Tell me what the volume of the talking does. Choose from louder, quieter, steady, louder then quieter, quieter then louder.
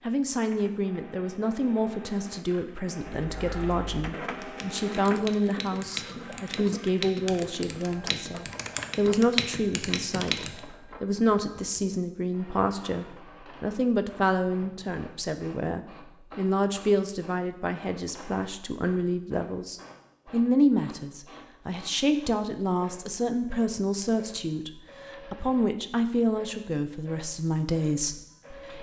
steady.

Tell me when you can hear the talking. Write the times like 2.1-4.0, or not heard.
0.1-28.7.